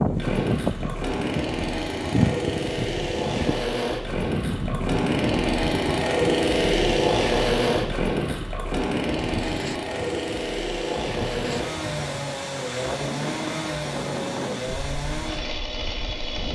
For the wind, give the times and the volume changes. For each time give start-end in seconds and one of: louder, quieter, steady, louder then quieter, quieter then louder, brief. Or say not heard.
0.0-16.5 quieter.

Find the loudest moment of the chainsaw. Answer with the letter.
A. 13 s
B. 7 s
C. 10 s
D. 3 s
B.